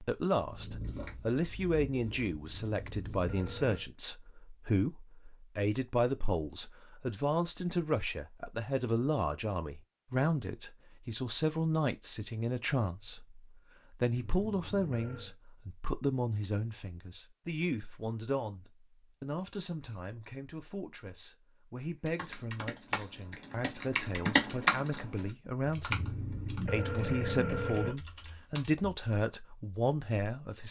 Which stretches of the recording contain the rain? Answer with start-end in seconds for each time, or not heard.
not heard.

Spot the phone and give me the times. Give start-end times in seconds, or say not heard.
2.6-3.9, 14.2-15.3, 25.9-27.9.